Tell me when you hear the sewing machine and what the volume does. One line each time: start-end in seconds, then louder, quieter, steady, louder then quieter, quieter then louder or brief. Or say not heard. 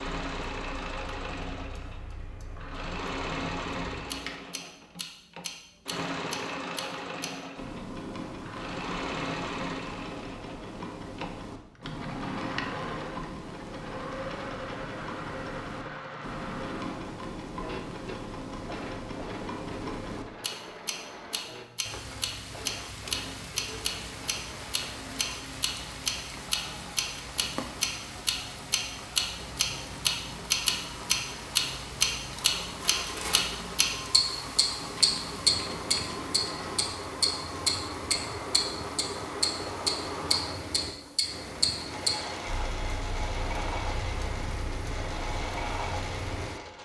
0.0-46.8 quieter then louder.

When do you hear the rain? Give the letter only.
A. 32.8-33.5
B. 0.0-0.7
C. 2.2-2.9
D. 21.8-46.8
D.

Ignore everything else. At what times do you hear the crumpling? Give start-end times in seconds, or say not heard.
32.8-33.5.